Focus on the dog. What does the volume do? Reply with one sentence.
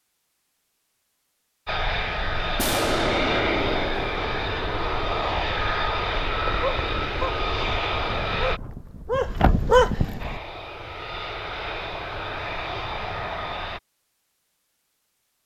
The loudness of the dog goes down, then up.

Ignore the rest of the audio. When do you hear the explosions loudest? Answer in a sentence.
The loudest moment of the explosions is at 3 seconds.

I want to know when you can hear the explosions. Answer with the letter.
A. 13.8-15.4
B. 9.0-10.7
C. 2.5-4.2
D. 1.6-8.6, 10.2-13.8
C.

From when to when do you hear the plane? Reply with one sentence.
You can hear the plane from 1.6 to 8.6 s and from 10.2 to 13.8 s.